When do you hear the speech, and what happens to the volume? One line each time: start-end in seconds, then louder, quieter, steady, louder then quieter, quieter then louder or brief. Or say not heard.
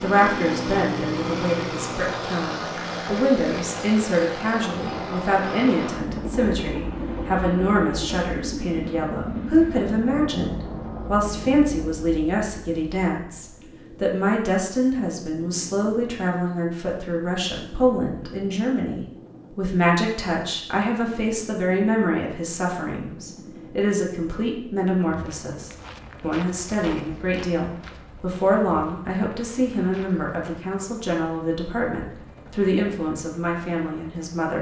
0.0-34.5 steady.